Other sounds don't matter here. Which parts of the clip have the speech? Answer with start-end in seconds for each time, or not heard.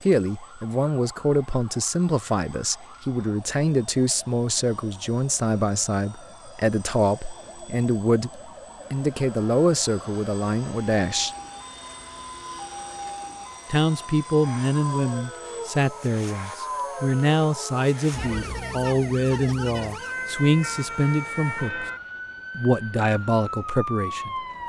0.0-11.3, 13.7-21.9, 22.6-24.6.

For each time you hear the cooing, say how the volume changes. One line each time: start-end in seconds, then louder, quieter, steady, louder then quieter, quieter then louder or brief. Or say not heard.
not heard.